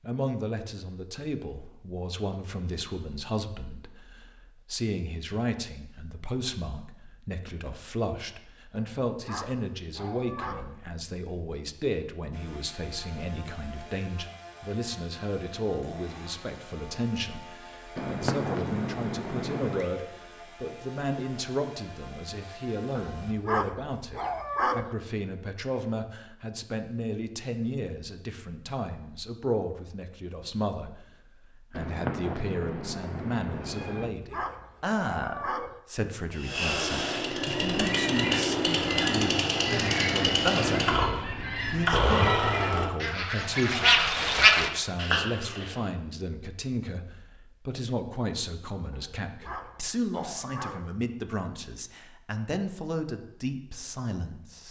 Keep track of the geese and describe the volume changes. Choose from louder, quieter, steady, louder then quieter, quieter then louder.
louder.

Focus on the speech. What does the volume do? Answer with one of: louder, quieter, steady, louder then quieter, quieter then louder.
steady.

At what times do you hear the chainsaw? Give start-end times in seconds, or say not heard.
12.3-23.4, 36.3-42.9.